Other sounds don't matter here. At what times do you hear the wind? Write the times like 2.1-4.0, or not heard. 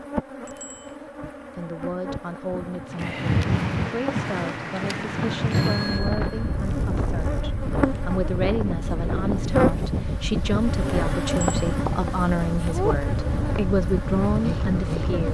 2.9-15.2.